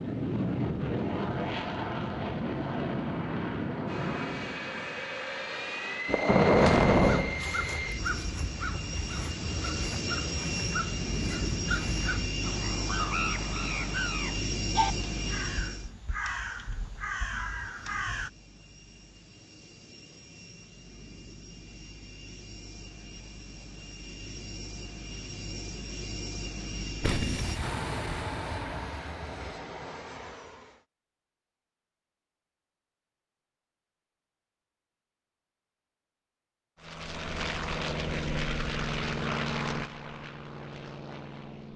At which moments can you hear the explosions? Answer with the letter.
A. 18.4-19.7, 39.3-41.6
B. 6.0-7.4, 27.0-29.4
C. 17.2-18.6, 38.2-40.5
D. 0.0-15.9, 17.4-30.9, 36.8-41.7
B.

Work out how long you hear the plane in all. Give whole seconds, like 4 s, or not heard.
34 s.